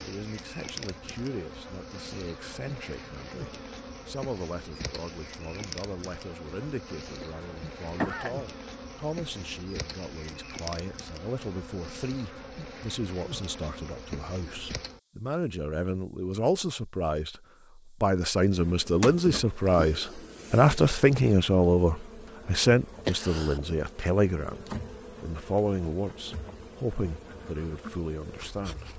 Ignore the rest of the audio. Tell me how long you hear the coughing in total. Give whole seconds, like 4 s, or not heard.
2 s.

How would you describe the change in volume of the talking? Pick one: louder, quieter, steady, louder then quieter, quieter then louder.
louder then quieter.